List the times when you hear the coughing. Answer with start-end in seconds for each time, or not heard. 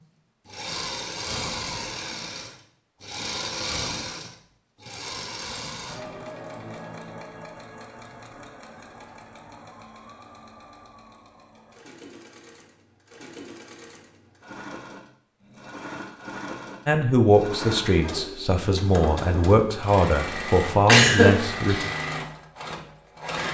20.9-21.9.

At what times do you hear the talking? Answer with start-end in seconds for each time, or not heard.
16.9-21.9.